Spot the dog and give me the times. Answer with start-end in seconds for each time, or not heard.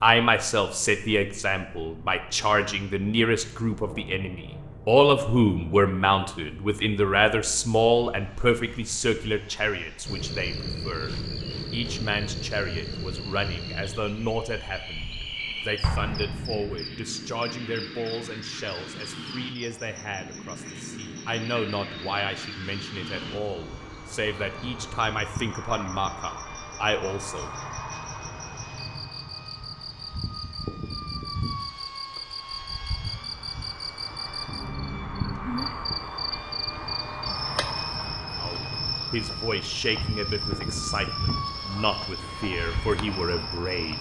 not heard.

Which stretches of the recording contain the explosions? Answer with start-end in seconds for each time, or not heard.
15.8-16.7.